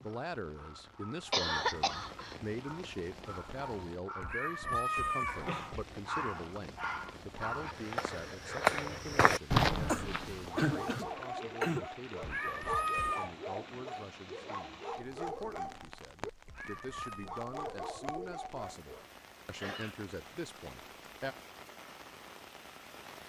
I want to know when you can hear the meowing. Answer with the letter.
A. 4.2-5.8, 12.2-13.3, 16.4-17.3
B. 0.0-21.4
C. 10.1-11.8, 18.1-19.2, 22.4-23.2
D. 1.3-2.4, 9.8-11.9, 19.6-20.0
A.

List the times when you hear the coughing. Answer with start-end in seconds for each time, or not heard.
1.3-2.4, 9.8-11.9, 19.6-20.0.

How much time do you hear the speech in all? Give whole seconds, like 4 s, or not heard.
21 s.